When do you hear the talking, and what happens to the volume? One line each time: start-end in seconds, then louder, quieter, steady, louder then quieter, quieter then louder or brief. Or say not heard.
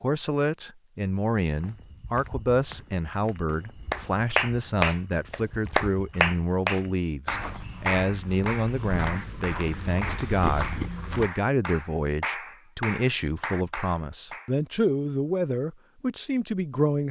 0.0-17.0 steady.